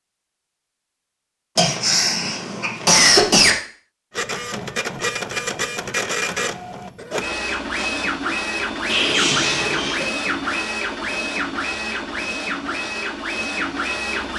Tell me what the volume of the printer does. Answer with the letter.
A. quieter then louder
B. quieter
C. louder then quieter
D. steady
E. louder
D.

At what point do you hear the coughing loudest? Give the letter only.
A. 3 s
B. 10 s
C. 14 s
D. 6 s
A.